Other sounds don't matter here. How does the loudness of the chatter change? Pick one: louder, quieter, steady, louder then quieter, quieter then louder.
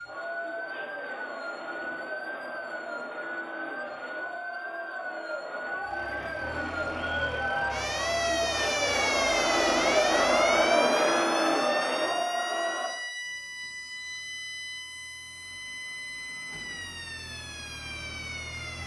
louder.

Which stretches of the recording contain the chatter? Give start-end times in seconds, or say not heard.
0.0-12.9.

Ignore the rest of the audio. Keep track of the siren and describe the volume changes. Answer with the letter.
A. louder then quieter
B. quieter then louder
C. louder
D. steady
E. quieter
A.